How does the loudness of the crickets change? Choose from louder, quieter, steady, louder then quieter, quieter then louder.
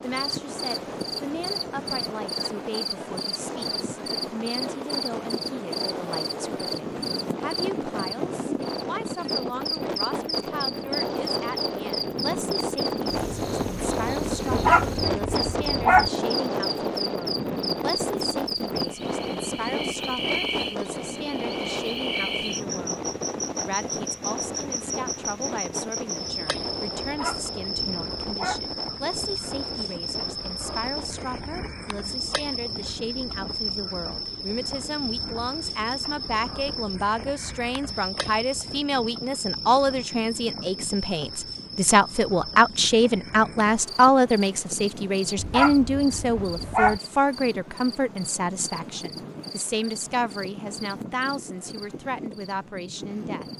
quieter.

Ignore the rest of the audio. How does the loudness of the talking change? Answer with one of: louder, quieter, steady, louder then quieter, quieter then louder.
louder.